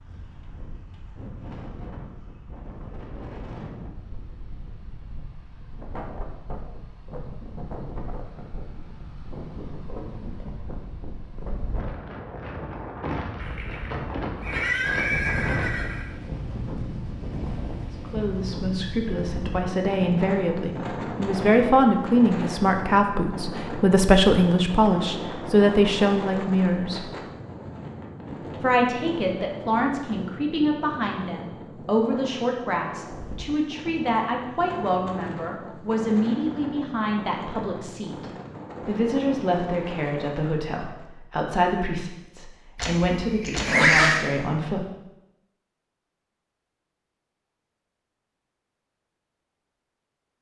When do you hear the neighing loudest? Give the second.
44 s.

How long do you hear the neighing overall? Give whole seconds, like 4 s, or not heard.
4 s.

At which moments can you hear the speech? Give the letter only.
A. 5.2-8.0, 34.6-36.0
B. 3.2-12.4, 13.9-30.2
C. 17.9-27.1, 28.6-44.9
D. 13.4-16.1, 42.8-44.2
C.